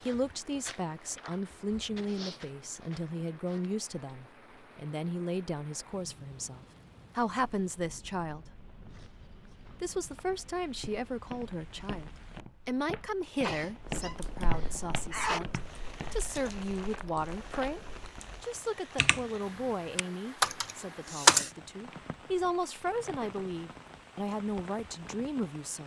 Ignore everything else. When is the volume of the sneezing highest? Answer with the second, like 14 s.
15 s.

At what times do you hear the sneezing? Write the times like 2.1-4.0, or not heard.
13.4-15.4.